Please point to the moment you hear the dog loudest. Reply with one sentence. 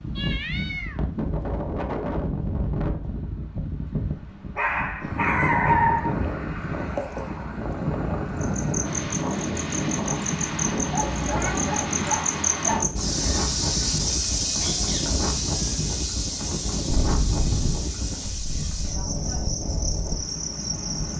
The volume of the dog peaks at 6 seconds.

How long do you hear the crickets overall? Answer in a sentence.
You can hear the crickets for 13 seconds altogether.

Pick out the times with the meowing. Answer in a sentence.
You can hear the meowing from 0.1 to 1.0 s, from 11.2 to 11.8 s and from 16.9 to 17.9 s.